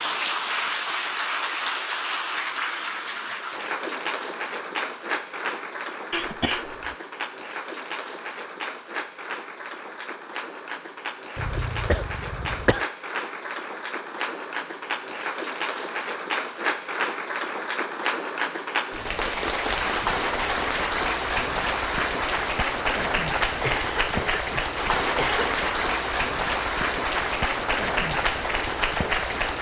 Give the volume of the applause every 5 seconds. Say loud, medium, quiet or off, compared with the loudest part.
loud, medium, medium, loud, loud, loud.